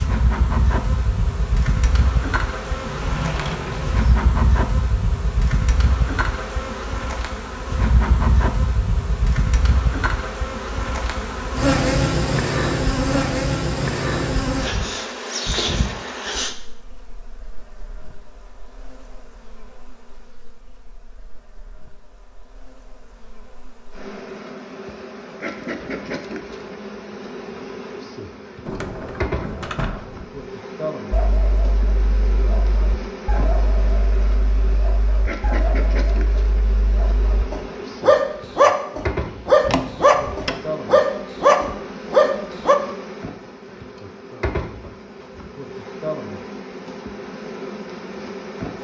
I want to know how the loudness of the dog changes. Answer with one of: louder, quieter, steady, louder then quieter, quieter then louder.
louder.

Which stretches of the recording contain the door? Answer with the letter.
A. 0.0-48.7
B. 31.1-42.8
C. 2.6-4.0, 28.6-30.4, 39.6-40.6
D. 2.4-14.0
C.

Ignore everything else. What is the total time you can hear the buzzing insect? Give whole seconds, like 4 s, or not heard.
49 s.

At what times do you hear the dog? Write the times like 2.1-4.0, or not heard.
31.1-42.8.